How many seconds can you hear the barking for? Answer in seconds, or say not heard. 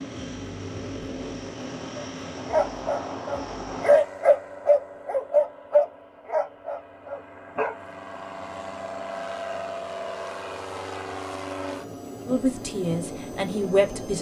6 s.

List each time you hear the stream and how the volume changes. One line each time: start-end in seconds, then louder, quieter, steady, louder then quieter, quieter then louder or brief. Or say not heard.
not heard.